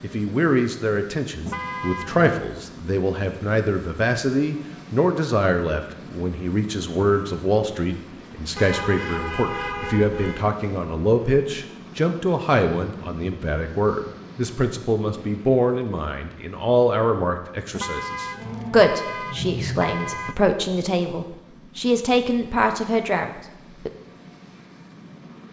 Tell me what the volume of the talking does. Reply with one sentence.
The loudness of the talking stays about the same.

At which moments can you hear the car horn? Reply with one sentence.
You can hear the car horn from 1.4 to 2.4 s, from 8.6 to 10.4 s and from 17.8 to 20.4 s.